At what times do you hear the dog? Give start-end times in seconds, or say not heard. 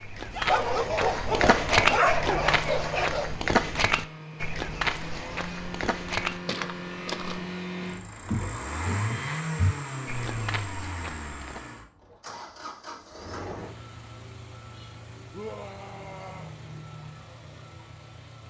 0.5-3.4.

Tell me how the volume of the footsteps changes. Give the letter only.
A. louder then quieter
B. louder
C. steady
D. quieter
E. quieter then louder
D.